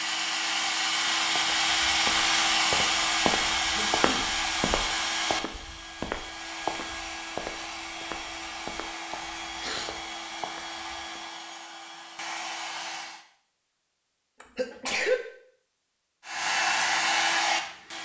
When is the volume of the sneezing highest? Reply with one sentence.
The loudest moment of the sneezing is at 15 seconds.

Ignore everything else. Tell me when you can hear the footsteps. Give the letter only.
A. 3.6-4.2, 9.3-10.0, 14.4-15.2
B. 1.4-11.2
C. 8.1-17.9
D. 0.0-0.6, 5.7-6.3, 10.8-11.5
B.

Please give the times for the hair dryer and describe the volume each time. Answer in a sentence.
The hair dryer can be heard from 0.0 to 13.2 s, getting quieter; and briefly from 16.2 to 17.9 s.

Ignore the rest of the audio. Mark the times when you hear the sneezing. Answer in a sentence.
You can hear the sneezing from 3.6 to 4.2 s, from 9.3 to 10.0 s and from 14.4 to 15.2 s.